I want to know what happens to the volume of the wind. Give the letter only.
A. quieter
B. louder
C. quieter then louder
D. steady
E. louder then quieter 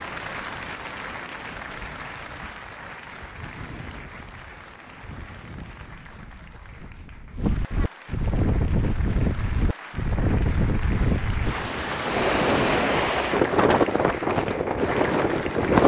B.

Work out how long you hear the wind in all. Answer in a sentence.
You can hear the wind for 16 seconds altogether.